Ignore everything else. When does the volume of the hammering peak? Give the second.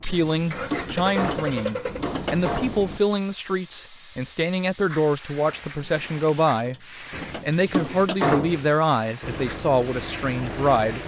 8 s.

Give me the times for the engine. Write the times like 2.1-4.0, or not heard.
0.0-3.0, 9.2-11.0.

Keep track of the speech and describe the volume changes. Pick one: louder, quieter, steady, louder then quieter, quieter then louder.
steady.